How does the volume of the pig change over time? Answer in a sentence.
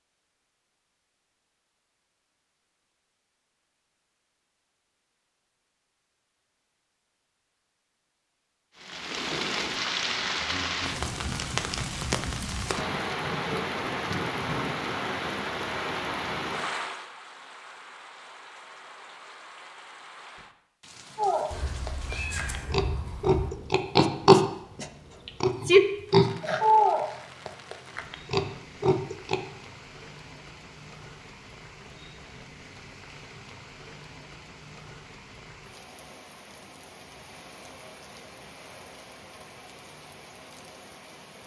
The loudness of the pig goes up, then down.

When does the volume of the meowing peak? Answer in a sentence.
The loudest moment of the meowing is at 22 seconds.